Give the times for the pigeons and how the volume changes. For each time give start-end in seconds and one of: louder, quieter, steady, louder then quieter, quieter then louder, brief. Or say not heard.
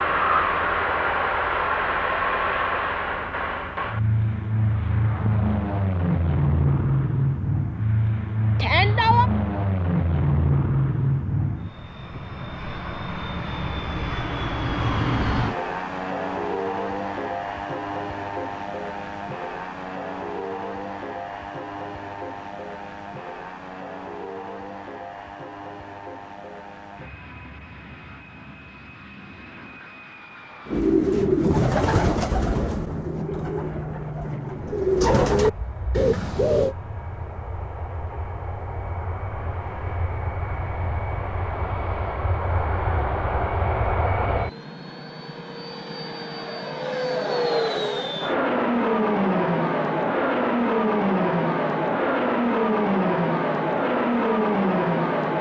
30.6-36.8 quieter then louder.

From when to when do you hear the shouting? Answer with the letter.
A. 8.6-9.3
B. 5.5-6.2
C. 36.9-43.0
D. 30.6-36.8
A.